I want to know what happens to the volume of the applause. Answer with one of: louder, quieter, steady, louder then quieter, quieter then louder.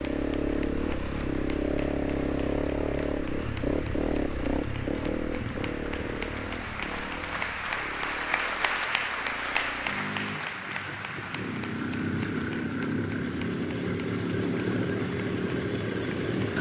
louder then quieter.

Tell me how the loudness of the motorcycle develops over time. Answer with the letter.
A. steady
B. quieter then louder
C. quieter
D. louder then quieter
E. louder
B.